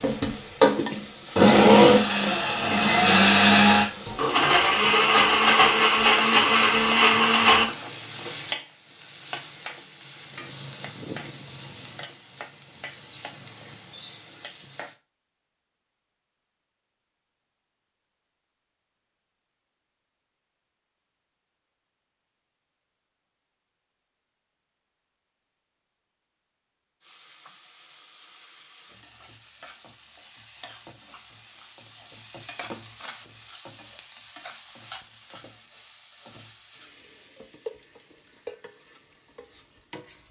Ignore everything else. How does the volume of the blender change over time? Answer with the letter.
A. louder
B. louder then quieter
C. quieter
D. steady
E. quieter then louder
D.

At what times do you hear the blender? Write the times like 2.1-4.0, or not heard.
0.0-7.7.